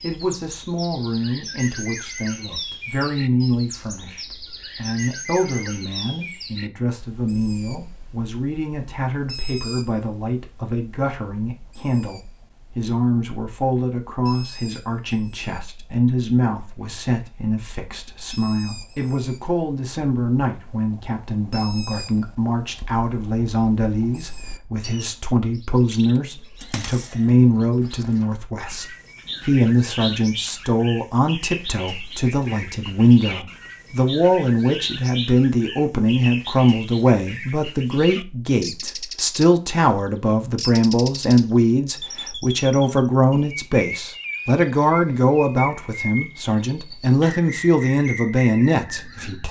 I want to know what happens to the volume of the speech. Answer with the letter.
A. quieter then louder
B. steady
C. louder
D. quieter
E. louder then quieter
C.